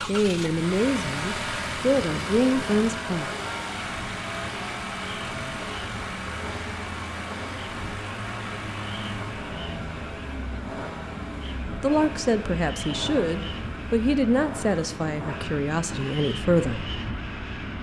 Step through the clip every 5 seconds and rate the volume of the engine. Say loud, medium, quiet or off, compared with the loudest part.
loud, loud, medium, medium.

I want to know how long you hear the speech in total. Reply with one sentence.
You can hear the speech for 8 seconds altogether.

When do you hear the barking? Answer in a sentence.
The barking can't be heard in this clip.